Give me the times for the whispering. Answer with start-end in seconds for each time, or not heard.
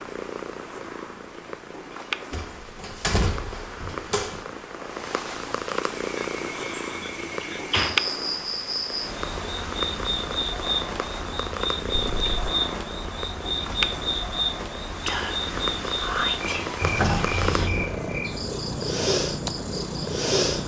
15.1-17.7.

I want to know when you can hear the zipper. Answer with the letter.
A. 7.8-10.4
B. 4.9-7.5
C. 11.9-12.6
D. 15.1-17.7
C.